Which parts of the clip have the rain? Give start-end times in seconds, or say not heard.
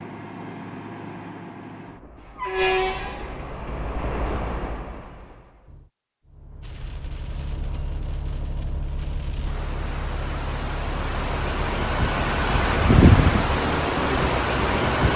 6.6-15.1.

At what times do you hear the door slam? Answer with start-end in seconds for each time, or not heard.
not heard.